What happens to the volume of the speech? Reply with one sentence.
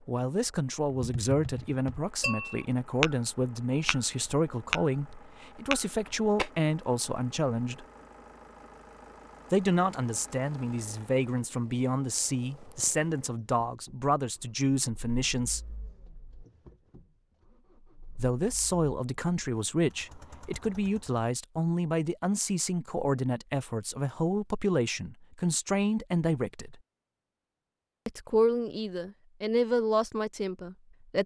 The loudness of the speech stays about the same.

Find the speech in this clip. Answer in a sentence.
You can hear the speech from 0.1 to 7.8 s, from 9.5 to 15.8 s, from 18.1 to 26.8 s and from 28.1 to 31.2 s.